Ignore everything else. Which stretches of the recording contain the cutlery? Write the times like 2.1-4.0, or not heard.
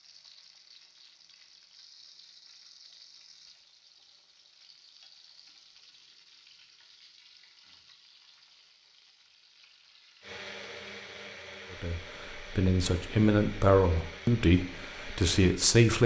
not heard.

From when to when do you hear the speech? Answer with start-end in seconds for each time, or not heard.
11.7-16.0.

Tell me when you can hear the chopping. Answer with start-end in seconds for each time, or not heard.
not heard.